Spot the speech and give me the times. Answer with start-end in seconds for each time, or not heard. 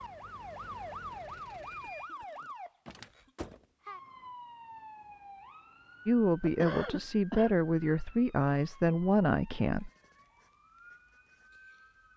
6.0-9.9.